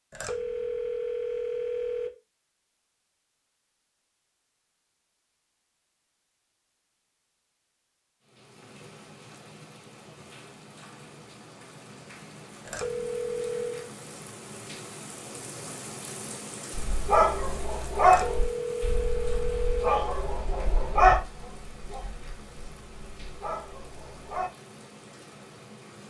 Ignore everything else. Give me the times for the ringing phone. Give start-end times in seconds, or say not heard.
0.1-2.1, 12.7-13.9, 18.1-20.0.